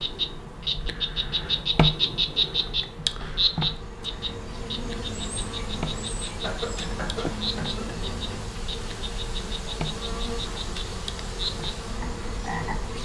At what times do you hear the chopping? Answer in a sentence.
The chopping can't be heard in this clip.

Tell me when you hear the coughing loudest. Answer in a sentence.
The loudest moment of the coughing is at 7 seconds.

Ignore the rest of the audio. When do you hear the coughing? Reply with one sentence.
The coughing can be heard from 6.4 to 7.8 s.